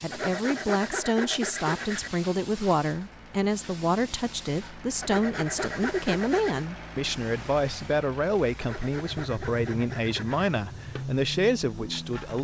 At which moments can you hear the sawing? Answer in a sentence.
You can hear the sawing from 0.1 to 2.1 s, from 5.0 to 6.6 s and from 8.6 to 10.4 s.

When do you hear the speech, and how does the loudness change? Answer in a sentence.
The speech can be heard from 0.0 to 12.3 s, at a steady volume.